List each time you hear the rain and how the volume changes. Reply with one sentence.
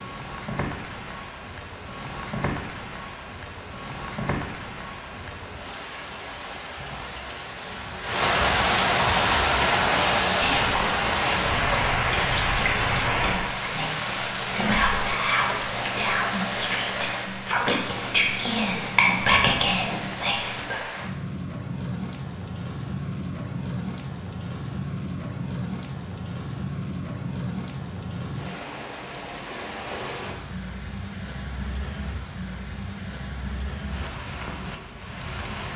The rain can be heard from 0.0 to 35.7 s, getting louder then quieter.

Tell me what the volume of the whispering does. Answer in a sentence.
The volume of the whispering goes up.